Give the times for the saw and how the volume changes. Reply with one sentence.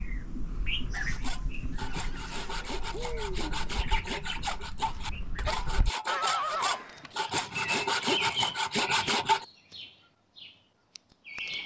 You can hear the saw from 0.9 to 9.4 s, getting louder.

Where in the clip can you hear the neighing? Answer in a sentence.
You can hear the neighing from 1.9 to 3.6 s and from 6.0 to 7.2 s.